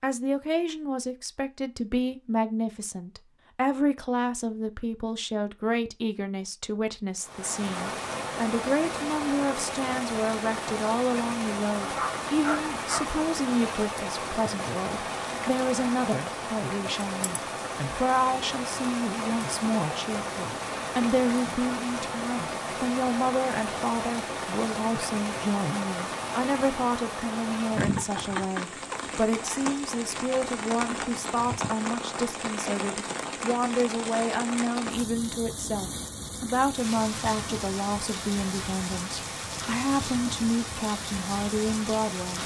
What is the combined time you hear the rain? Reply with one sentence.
The rain can be heard for 35 seconds in total.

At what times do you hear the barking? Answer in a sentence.
You can hear the barking from 11.8 to 13.1 s.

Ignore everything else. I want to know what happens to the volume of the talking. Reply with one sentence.
The loudness of the talking stays about the same.